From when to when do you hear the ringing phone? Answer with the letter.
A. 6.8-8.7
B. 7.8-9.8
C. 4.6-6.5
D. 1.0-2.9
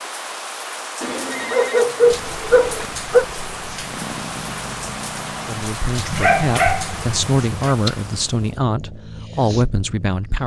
D.